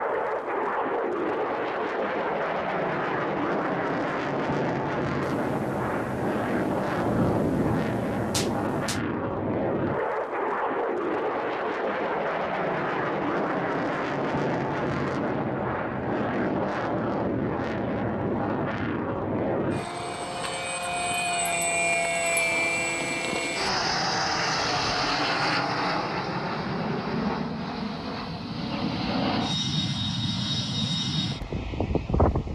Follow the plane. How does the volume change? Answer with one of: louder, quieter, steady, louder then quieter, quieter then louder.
steady.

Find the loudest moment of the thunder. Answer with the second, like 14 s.
7 s.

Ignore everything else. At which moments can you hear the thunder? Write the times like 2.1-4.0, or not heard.
5.2-9.0.